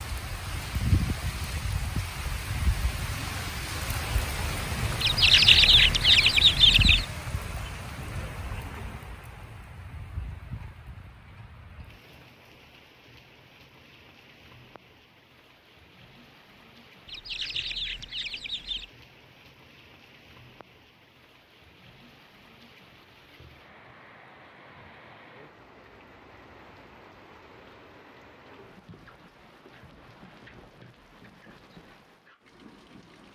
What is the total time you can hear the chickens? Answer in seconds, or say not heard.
4 s.